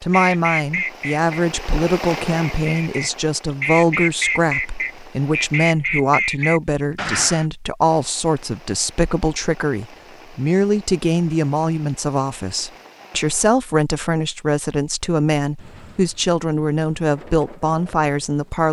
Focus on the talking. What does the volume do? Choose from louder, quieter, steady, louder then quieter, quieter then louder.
steady.